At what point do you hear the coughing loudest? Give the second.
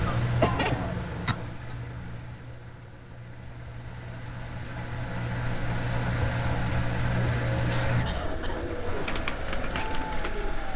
1 s.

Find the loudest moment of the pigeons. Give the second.
9 s.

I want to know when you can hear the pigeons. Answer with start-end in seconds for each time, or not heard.
7.1-10.7.